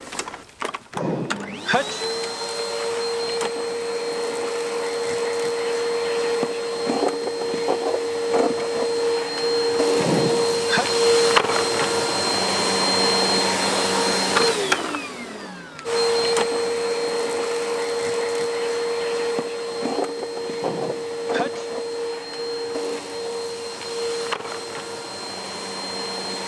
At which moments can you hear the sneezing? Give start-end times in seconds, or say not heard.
0.9-2.0, 9.9-10.9, 20.6-21.7.